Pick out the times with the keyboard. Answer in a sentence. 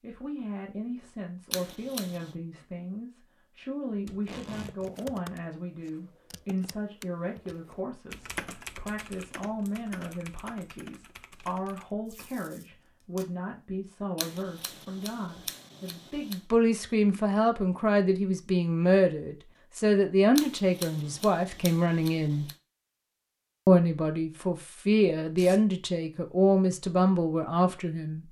You can hear the keyboard from 4.7 to 11.9 s.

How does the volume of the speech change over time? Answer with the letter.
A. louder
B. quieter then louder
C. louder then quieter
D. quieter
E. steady
A.